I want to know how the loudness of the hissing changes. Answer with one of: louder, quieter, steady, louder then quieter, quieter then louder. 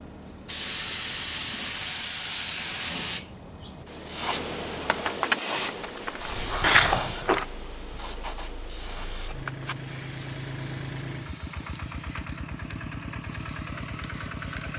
quieter.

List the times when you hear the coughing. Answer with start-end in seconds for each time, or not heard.
6.6-7.5.